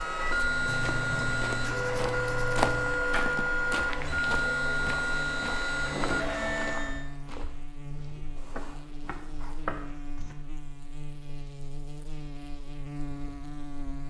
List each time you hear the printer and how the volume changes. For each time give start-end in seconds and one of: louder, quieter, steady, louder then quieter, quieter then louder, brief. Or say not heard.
0.0-7.0 steady.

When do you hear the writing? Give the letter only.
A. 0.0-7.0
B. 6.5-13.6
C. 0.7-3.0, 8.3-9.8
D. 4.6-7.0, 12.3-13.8
C.